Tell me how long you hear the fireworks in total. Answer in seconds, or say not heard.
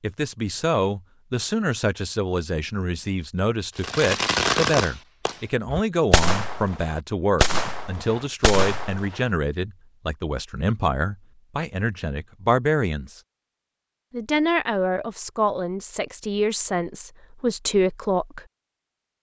5 s.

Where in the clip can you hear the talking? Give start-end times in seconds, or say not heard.
0.0-13.2, 14.1-18.4.